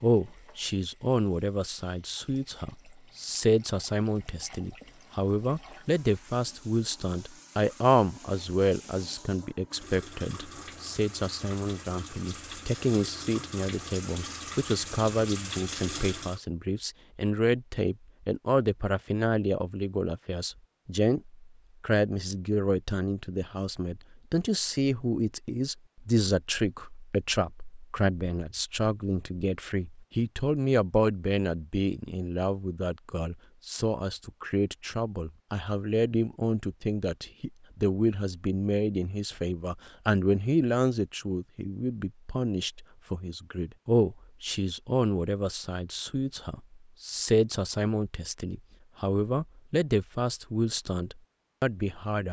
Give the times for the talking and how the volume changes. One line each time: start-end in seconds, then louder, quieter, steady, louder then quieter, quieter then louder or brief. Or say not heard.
0.0-52.2 steady.